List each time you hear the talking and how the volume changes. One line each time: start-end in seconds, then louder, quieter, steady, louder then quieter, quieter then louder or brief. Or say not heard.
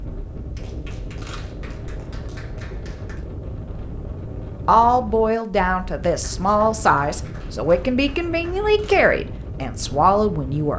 4.7-10.7 steady.